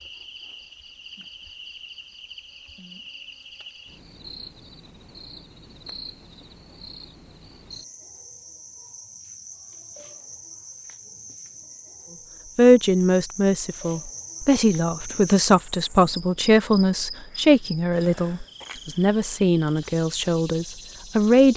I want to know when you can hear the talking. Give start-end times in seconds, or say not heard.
12.6-21.5.